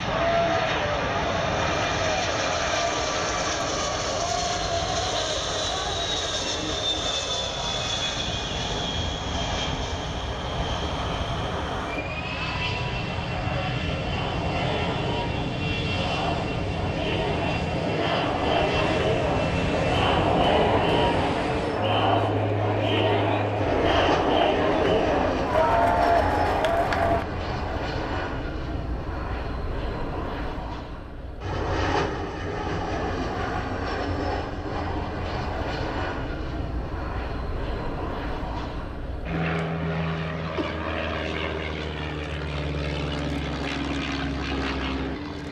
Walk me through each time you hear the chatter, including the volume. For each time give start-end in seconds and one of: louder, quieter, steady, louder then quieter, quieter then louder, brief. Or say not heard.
0.0-27.2 quieter then louder.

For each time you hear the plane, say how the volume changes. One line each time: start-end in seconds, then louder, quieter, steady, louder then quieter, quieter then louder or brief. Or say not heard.
0.0-45.4 steady.